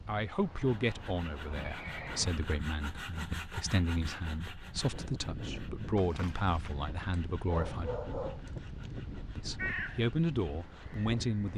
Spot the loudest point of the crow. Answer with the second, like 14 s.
10 s.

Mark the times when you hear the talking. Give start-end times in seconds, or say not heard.
0.1-7.9, 9.3-11.5.